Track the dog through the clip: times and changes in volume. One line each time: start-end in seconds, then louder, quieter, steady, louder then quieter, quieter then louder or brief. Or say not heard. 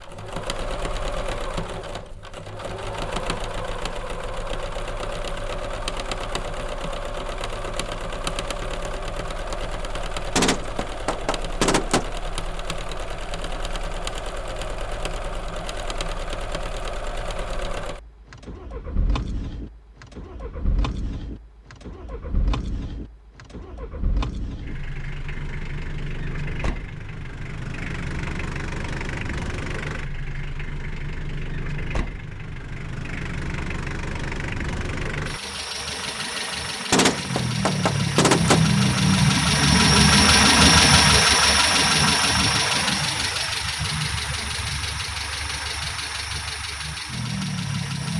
not heard.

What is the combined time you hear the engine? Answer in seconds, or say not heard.
48 s.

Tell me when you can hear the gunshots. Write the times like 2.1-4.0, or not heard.
10.3-12.2, 36.9-38.7.